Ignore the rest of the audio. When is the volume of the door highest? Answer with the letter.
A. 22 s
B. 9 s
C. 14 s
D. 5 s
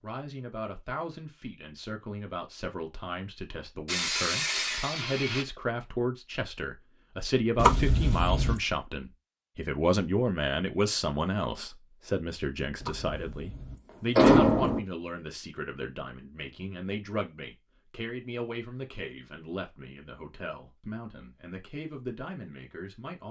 C.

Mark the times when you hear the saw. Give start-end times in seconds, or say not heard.
3.9-5.5.